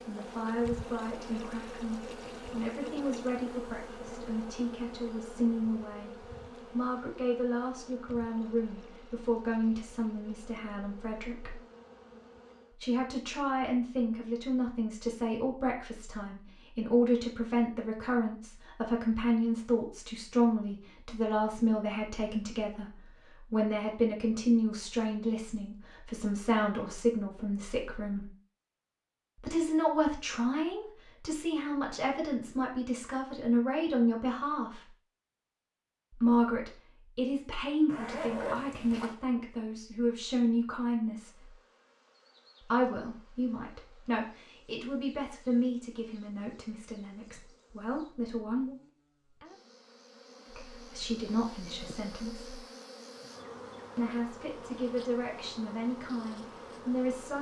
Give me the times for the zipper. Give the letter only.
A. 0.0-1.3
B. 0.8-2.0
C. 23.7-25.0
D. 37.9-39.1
D.